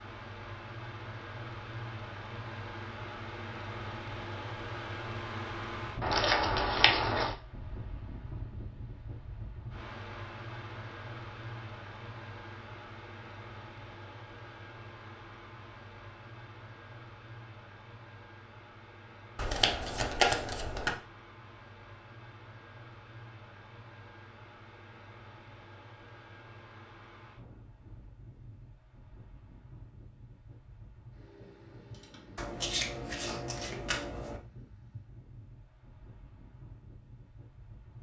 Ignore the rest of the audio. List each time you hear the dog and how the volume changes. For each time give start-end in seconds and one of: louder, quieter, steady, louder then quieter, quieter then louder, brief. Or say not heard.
not heard.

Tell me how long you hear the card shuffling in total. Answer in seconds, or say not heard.
5 s.